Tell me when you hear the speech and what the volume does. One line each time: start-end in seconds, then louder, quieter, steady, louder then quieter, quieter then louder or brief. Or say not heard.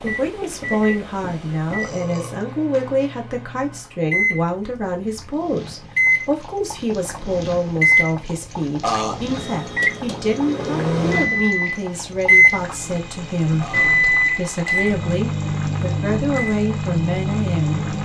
0.0-17.8 steady.